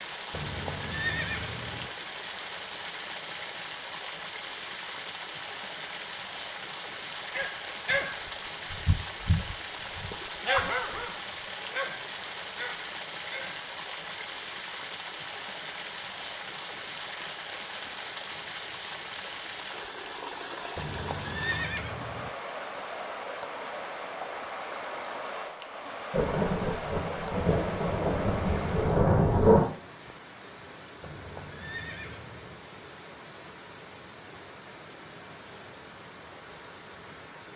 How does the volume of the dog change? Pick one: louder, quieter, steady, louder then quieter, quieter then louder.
quieter.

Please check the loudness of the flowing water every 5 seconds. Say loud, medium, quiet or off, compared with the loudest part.
loud, loud, loud, loud, loud, loud, medium, medium.